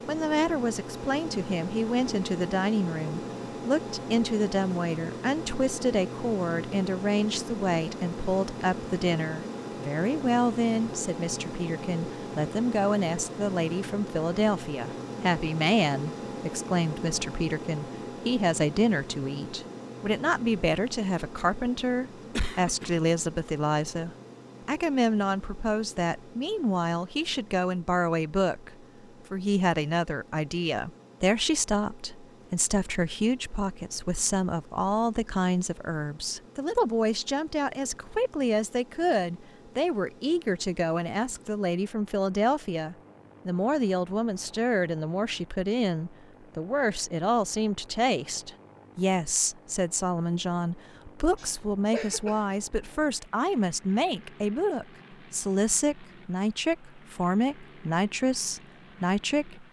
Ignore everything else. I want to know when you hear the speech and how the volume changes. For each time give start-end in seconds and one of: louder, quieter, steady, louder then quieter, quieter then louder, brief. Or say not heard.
0.1-59.6 steady.